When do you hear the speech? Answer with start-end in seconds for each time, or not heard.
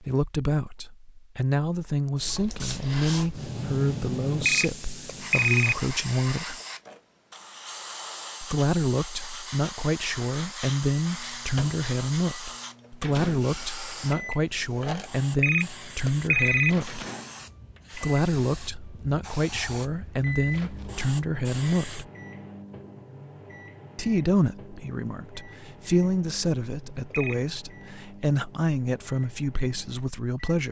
0.0-6.5, 8.4-17.1, 17.9-22.1, 23.9-30.6.